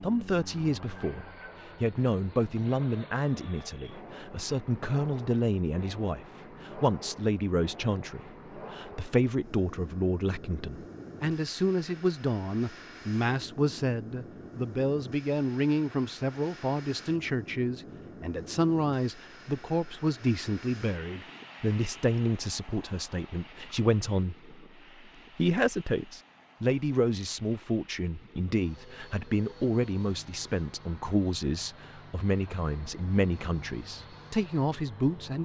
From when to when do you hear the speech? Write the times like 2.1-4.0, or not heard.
0.0-24.5, 25.4-35.4.